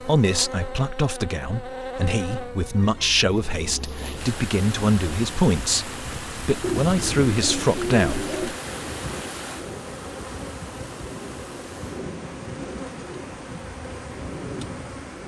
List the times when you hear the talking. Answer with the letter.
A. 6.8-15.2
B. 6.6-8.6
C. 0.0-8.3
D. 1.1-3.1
C.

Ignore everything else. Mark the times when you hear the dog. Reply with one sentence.
The dog can't be heard in this clip.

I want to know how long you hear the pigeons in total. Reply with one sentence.
You can hear the pigeons for 2 seconds altogether.